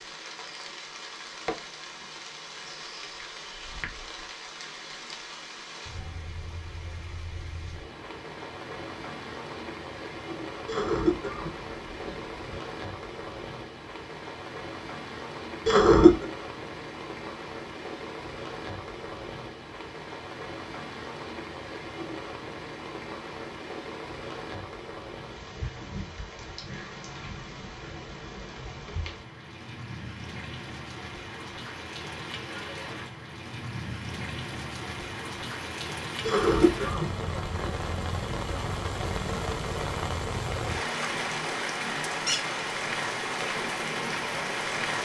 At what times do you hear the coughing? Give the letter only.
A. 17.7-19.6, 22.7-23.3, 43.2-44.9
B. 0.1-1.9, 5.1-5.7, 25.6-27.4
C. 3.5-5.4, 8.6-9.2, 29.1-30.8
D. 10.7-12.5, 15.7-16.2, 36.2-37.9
D.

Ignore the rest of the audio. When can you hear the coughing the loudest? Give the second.
16 s.